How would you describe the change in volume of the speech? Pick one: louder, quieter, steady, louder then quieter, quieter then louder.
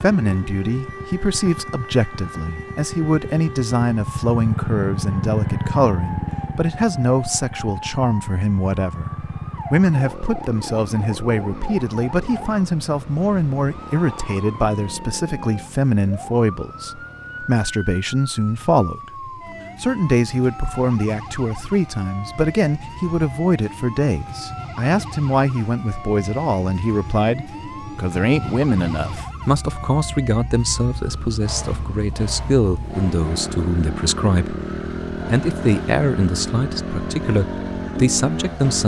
steady.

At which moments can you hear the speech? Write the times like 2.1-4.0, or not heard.
0.0-34.6, 35.3-38.8.